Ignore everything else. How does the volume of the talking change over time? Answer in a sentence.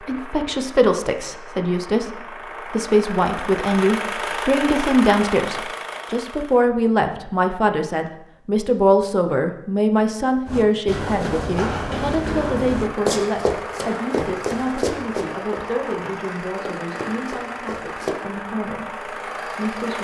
The volume of the talking goes down.